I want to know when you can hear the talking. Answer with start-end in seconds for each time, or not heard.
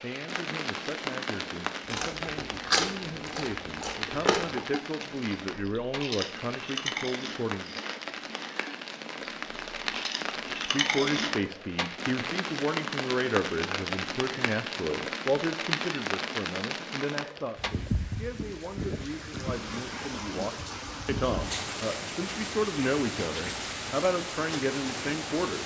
0.0-7.8, 10.5-25.6.